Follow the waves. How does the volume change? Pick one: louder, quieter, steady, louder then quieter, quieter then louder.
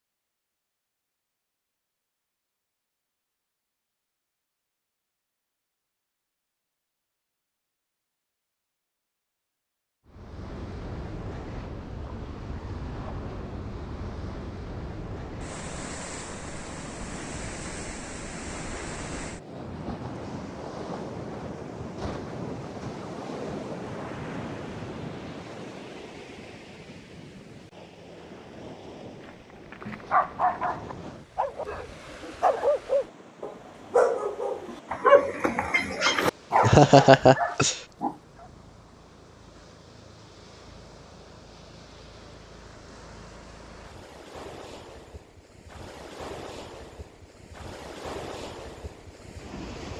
quieter then louder.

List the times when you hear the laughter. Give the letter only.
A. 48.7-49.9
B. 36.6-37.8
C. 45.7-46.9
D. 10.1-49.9
B.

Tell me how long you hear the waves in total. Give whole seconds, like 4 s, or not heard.
40 s.